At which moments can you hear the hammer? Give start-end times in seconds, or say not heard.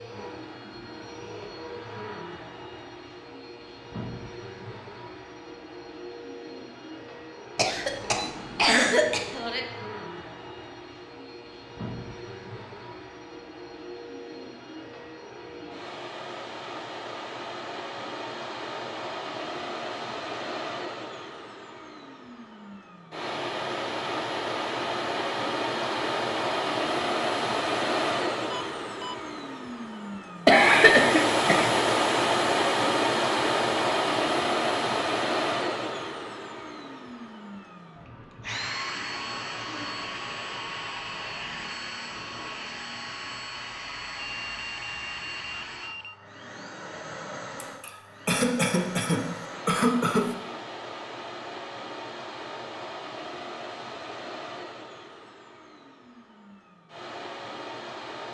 not heard.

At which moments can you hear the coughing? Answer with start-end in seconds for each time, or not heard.
7.5-9.6, 30.4-31.7, 47.6-50.4.